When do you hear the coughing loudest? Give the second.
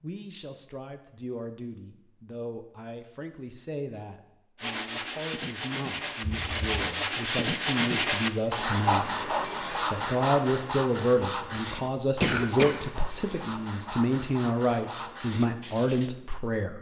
12 s.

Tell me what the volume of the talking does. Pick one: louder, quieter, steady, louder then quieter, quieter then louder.
louder.